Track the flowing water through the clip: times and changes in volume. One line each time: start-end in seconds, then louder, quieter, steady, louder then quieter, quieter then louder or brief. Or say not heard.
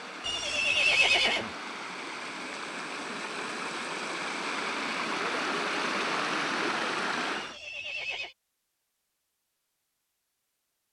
0.0-7.6 louder.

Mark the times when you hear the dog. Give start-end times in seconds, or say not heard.
not heard.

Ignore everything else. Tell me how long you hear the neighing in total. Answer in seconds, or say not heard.
2 s.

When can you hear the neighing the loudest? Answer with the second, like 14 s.
1 s.